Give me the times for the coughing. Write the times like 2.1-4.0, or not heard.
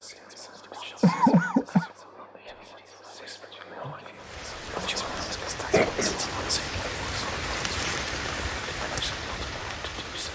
1.0-1.9, 5.7-7.0.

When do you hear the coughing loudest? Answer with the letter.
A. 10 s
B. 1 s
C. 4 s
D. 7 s
B.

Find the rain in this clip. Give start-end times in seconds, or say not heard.
4.2-10.3.